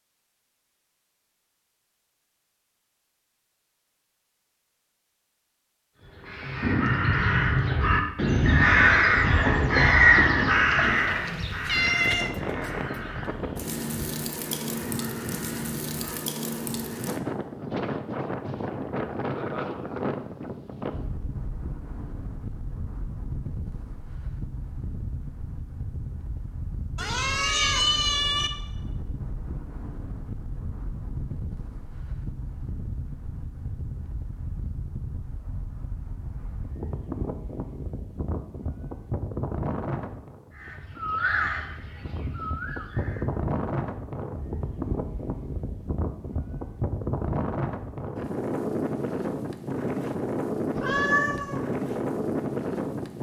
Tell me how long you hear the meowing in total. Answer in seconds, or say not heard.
4 s.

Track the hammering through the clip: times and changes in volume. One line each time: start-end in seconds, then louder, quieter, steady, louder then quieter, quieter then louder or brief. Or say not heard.
not heard.